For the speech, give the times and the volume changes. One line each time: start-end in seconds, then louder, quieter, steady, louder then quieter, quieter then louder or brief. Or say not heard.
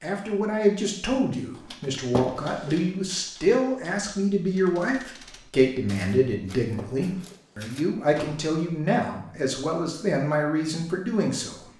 0.0-11.7 steady.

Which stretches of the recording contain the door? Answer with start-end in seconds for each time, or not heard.
2.1-2.8, 6.8-8.4.